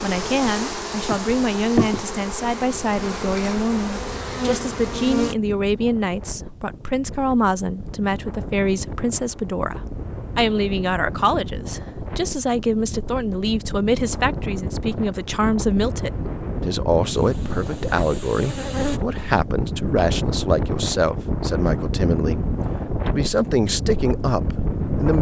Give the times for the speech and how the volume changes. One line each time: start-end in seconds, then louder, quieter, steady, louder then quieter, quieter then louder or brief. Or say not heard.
0.0-22.4 steady
23.1-25.1 brief.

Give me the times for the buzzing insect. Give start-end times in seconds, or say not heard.
0.0-5.3, 17.1-19.0.